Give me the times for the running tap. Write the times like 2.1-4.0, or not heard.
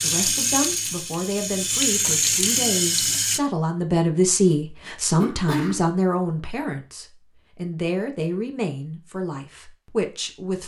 0.0-3.4.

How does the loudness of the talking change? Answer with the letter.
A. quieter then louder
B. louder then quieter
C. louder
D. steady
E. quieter
B.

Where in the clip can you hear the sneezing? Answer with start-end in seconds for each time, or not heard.
5.2-5.8.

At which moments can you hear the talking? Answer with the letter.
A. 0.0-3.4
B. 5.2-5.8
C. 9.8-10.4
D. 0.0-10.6
D.